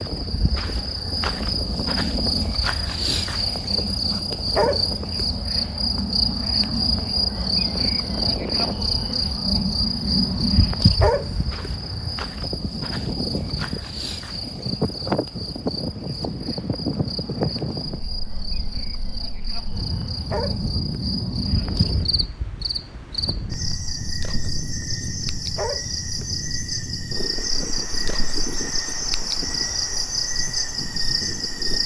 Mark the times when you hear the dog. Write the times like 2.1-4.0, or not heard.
4.5-5.2, 11.0-11.7, 20.3-20.8, 25.6-26.2.